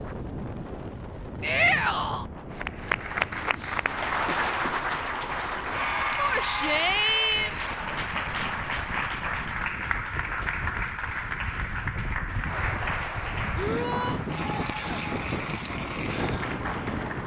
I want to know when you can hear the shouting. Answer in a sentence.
You can hear the shouting from 1.4 to 2.2 s, from 6.2 to 7.5 s and from 13.6 to 14.2 s.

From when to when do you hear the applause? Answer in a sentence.
You can hear the applause from 2.5 to 17.2 s.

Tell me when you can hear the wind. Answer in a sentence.
You can hear the wind from 0.0 to 17.2 s.